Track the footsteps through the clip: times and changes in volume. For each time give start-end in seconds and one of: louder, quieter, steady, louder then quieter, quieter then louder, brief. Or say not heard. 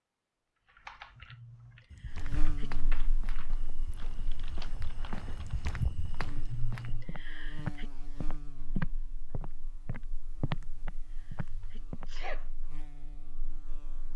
1.9-12.1 louder.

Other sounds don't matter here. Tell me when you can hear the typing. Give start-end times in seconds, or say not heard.
0.7-6.2.